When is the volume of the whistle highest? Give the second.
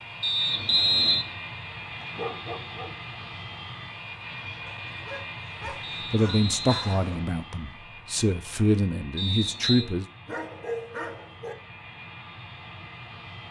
1 s.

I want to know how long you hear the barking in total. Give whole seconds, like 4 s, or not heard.
5 s.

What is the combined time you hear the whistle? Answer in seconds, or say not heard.
3 s.